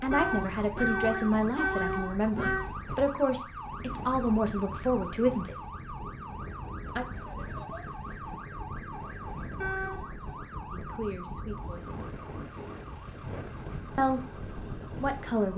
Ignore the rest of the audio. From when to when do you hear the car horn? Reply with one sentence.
You can hear the car horn from 0.1 to 2.6 s and from 9.6 to 10.1 s.